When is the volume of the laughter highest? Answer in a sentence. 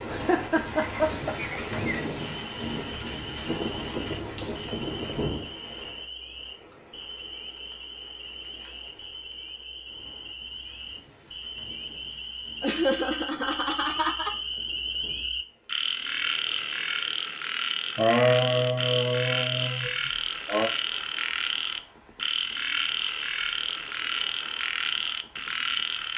The loudest moment of the laughter is at 18 seconds.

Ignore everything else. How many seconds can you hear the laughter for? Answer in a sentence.
You can hear the laughter for 6 seconds altogether.